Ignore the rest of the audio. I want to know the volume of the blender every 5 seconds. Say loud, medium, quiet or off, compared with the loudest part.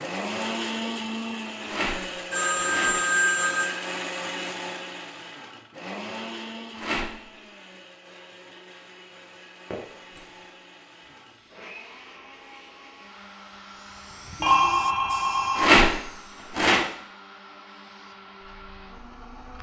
loud, medium, quiet, quiet.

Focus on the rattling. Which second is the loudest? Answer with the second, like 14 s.
16 s.